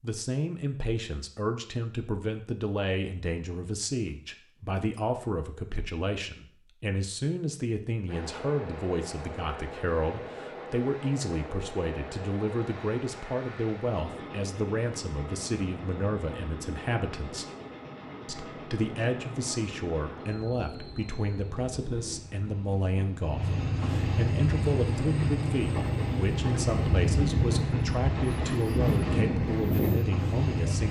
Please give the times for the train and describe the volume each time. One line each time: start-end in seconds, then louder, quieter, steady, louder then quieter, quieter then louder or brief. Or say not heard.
8.1-30.8 louder.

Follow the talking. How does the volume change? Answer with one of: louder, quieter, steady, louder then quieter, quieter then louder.
steady.